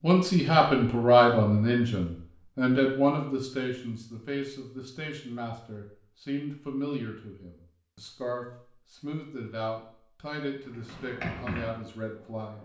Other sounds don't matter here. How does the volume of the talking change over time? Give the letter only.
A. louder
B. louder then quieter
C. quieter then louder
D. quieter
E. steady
D.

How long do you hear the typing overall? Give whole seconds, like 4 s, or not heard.
2 s.